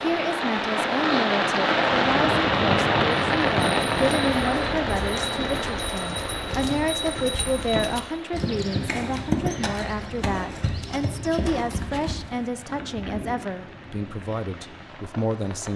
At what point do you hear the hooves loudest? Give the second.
9 s.